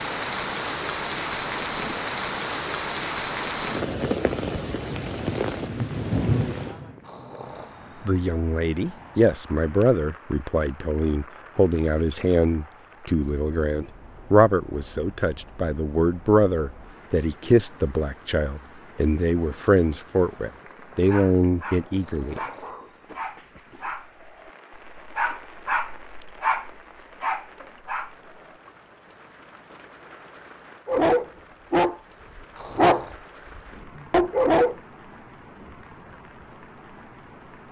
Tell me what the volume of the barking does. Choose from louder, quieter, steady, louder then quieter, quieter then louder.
louder.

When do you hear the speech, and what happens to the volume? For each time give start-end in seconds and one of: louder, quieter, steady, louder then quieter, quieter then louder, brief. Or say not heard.
8.1-22.4 steady.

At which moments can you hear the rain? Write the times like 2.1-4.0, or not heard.
0.0-37.6.